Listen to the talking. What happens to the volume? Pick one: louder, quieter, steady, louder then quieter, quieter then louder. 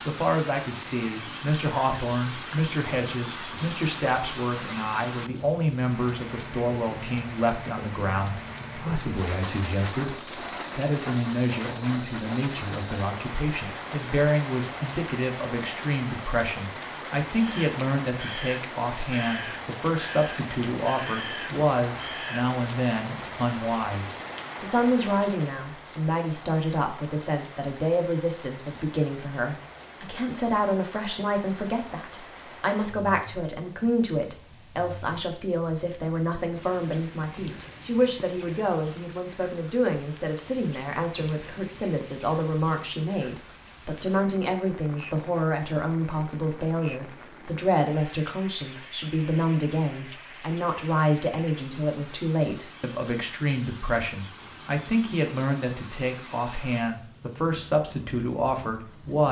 steady.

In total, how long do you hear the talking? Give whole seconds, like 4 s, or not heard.
59 s.